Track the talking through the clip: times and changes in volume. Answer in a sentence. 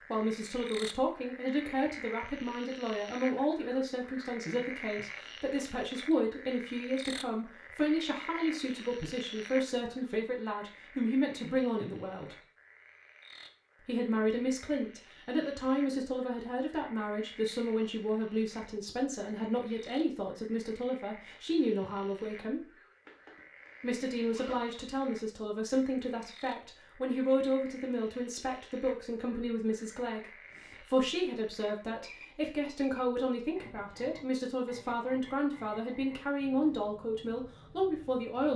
The talking can be heard from 0.1 to 12.3 s, at a steady volume; from 13.8 to 22.7 s, at a steady volume; and from 23.8 to 38.5 s, at a steady volume.